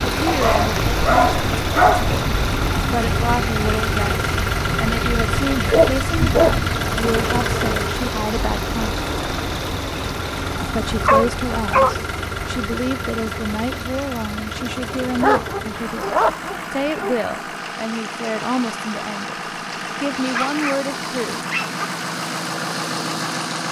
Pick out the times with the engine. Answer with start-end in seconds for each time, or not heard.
0.0-23.6.